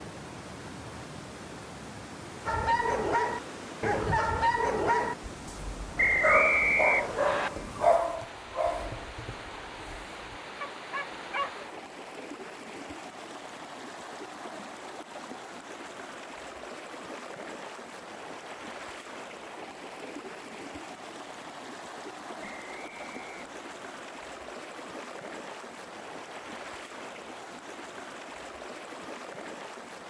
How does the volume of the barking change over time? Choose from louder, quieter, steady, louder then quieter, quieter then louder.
quieter.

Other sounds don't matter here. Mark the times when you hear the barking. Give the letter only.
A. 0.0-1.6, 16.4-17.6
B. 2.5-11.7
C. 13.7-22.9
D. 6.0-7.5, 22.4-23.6
B.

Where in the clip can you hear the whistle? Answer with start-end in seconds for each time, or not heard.
6.0-7.5, 22.4-23.6.